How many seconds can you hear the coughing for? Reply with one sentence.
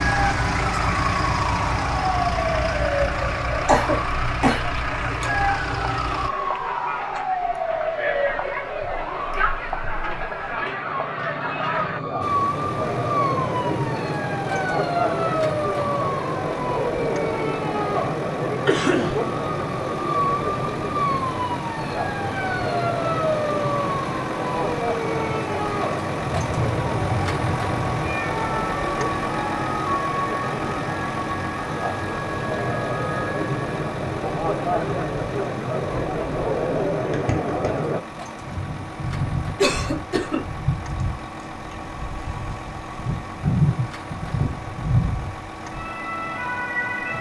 The coughing can be heard for 3 seconds in total.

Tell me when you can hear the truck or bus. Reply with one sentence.
The truck or bus can be heard from 0.0 to 6.3 s and from 12.2 to 47.1 s.